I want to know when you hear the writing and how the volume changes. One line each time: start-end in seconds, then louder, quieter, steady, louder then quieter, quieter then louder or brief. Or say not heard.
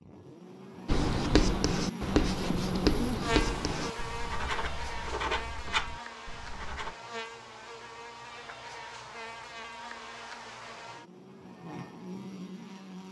0.8-7.0 quieter.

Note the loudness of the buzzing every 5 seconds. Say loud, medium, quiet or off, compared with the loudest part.
loud, medium, medium.